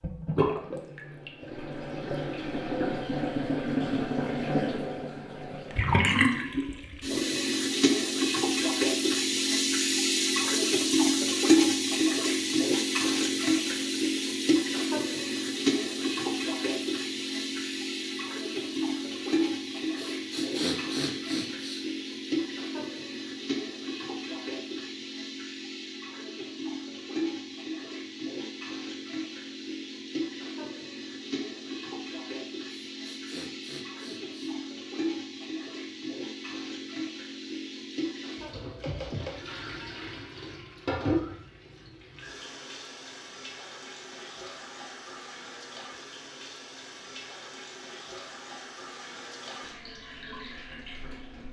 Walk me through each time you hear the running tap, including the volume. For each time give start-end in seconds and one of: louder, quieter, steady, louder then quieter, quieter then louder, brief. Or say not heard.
0.0-51.4 quieter.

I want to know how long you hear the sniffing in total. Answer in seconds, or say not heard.
3 s.